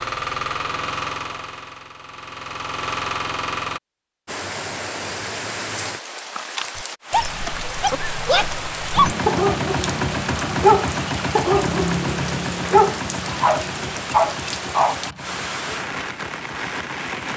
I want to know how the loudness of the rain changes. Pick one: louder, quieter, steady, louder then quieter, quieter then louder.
steady.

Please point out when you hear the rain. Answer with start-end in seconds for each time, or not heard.
4.2-17.3.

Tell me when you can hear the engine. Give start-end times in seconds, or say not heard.
0.0-3.8, 8.9-17.3.